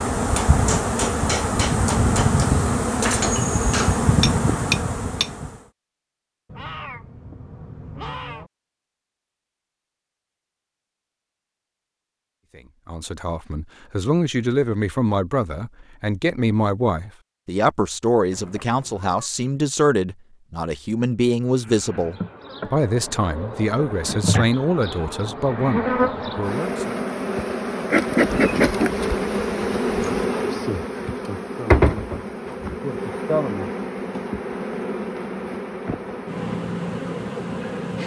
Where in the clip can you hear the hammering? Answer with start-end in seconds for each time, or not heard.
0.3-5.3.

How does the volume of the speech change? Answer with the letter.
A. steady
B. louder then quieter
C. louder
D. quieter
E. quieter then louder
A.